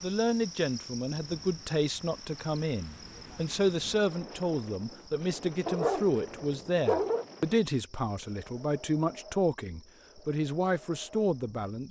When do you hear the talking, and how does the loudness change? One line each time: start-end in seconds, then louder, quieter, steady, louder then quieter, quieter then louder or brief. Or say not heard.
0.0-11.8 steady.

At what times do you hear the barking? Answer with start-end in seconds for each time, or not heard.
5.7-7.2.